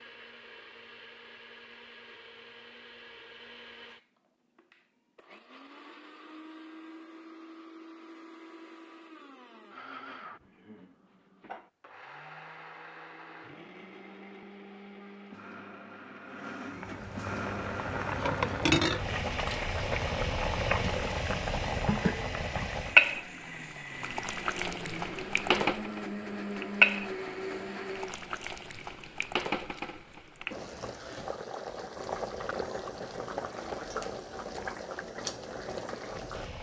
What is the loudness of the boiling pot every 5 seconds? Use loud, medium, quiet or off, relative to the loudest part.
off, off, off, loud, loud, loud, medium, medium.